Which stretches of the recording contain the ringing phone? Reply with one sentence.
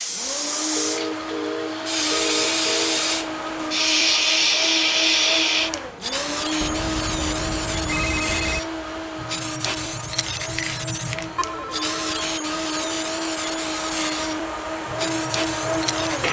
The ringing phone can be heard from 0.7 to 3.0 s, from 6.6 to 8.6 s and from 11.3 to 12.2 s.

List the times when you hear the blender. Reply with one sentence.
The blender can be heard from 0.0 to 16.2 s.